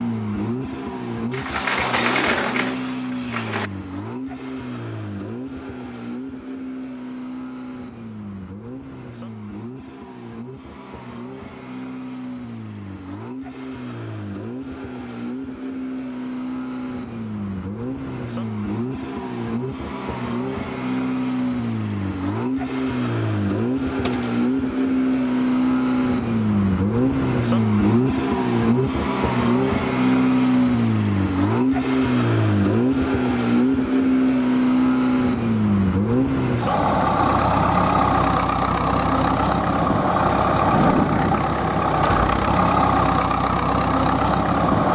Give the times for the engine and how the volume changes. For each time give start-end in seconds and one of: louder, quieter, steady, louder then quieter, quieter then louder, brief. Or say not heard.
0.0-44.9 louder.